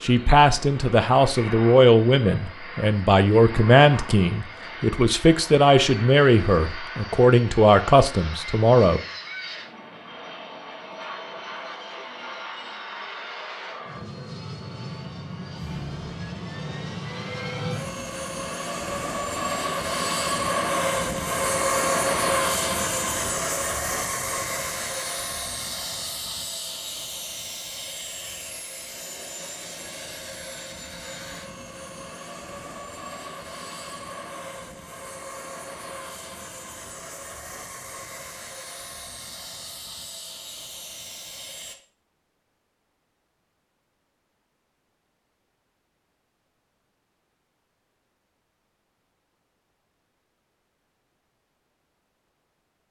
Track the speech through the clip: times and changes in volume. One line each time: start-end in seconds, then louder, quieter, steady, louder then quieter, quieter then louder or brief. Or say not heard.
0.0-9.0 steady.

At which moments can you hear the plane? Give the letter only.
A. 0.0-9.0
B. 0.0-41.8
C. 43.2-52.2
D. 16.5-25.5
B.